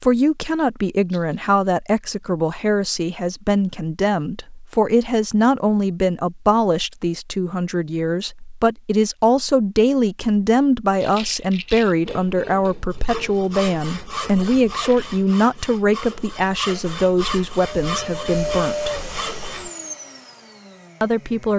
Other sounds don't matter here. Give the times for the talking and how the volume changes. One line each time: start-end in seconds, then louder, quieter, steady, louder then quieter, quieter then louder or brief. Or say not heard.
0.0-18.9 steady
21.0-21.5 brief.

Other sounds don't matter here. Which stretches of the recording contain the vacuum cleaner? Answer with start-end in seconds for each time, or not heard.
17.6-21.5.